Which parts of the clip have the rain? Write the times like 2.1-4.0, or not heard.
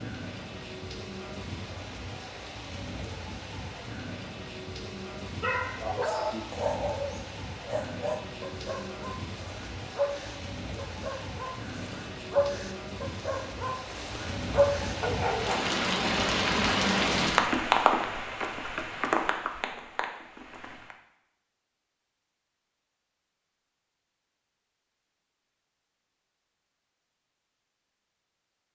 0.0-20.9.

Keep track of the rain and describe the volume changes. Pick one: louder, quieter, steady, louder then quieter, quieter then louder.
louder.